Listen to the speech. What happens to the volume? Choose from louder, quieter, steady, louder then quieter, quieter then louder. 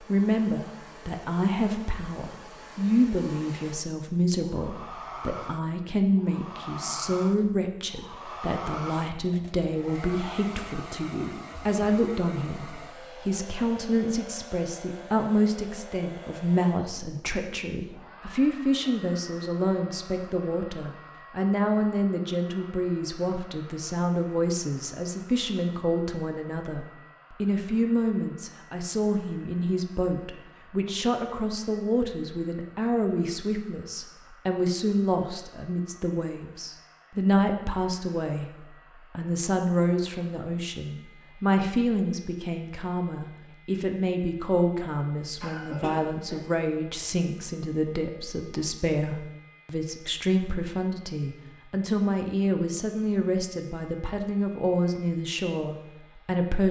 steady.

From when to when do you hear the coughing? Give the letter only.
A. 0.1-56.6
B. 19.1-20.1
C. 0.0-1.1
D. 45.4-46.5
D.